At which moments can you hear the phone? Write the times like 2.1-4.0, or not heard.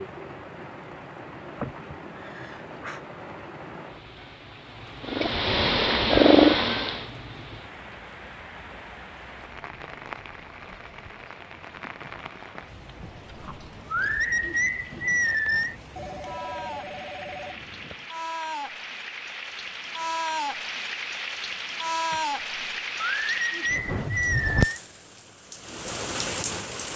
15.9-18.1.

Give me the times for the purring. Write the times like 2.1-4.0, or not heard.
5.0-7.0.